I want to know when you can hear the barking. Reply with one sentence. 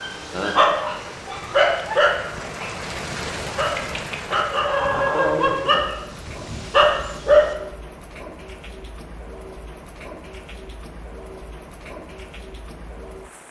The barking can be heard from 0.0 to 7.5 s.